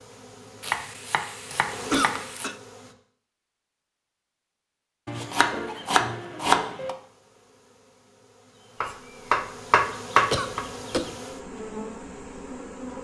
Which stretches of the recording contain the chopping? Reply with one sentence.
The chopping can be heard from 0.6 to 2.5 s, from 5.0 to 7.0 s and from 8.8 to 10.7 s.